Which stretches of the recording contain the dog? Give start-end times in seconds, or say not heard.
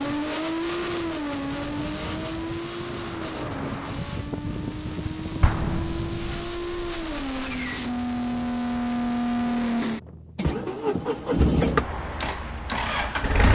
not heard.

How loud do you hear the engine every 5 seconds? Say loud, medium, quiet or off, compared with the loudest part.
medium, loud, loud.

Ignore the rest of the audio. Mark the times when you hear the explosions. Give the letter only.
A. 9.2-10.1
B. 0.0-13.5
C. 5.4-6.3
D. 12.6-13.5
C.